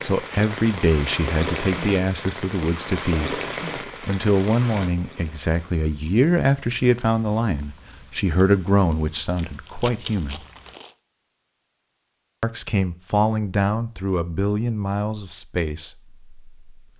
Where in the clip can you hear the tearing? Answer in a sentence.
The tearing can be heard from 9.3 to 10.9 s.